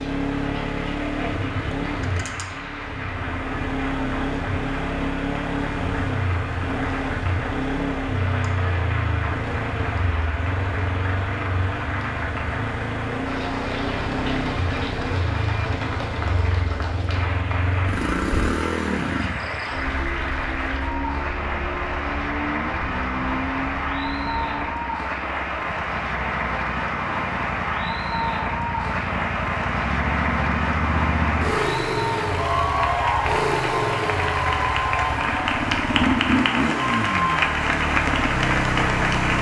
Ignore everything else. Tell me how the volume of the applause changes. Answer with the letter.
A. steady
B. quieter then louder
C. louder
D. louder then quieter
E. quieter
C.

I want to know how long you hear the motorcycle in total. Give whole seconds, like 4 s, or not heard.
39 s.